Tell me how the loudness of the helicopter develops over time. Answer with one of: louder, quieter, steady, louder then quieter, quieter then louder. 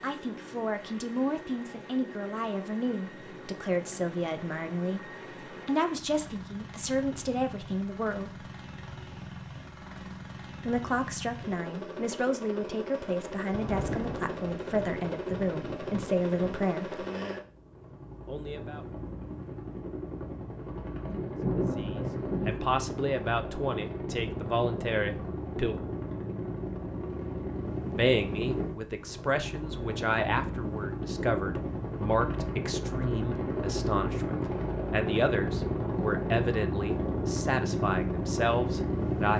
louder.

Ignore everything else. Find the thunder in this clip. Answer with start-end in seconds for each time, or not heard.
13.5-16.7, 21.1-22.6.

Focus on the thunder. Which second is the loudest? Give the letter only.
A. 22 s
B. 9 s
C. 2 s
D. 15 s
A.